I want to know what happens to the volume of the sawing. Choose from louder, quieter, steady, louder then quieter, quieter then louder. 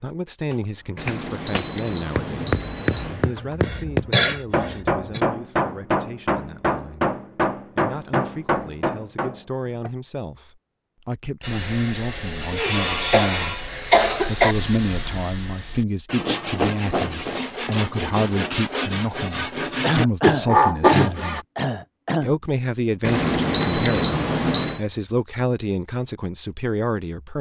quieter then louder.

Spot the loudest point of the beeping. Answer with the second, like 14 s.
24 s.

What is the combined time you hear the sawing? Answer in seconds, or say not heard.
10 s.